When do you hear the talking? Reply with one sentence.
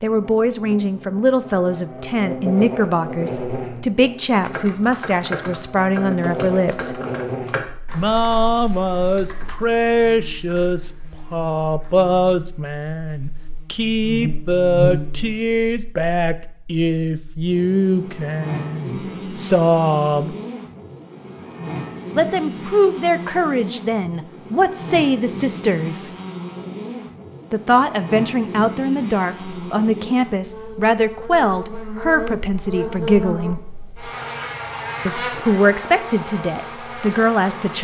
The talking can be heard from 0.0 to 7.0 s, from 8.0 to 20.4 s, from 22.1 to 26.1 s, from 27.5 to 33.6 s and from 35.0 to 37.7 s.